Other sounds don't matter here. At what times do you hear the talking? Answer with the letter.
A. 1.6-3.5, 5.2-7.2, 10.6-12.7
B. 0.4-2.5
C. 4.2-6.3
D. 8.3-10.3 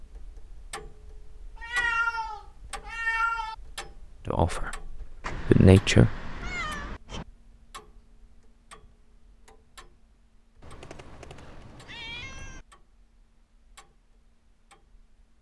C.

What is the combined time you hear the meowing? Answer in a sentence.
The meowing can be heard for 6 seconds in total.